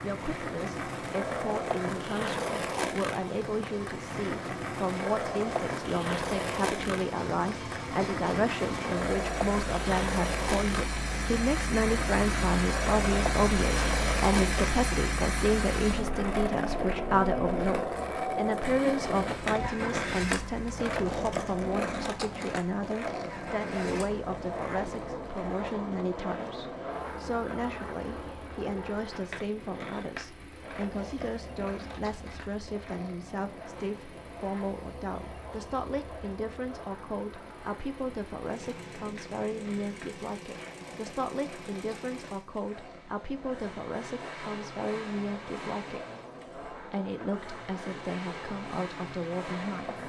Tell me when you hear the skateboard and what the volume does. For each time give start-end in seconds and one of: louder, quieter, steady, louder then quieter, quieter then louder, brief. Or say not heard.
0.0-50.0 quieter.